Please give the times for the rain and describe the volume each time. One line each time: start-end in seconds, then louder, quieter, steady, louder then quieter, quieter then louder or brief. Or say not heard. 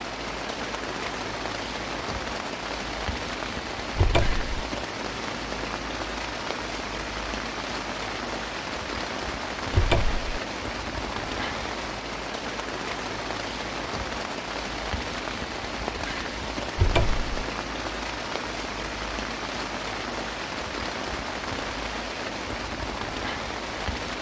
0.0-24.1 steady.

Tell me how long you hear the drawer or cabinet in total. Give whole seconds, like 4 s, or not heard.
2 s.